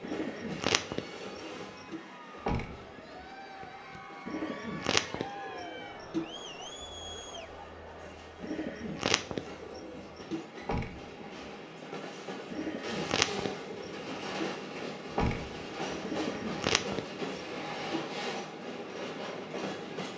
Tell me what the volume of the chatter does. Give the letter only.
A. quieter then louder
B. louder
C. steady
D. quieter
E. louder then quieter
E.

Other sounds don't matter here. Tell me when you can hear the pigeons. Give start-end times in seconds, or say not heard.
0.0-2.0, 4.2-6.2, 8.4-10.4, 12.5-14.4, 16.0-18.0.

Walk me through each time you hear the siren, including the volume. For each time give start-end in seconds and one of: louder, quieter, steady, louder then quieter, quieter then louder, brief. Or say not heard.
not heard.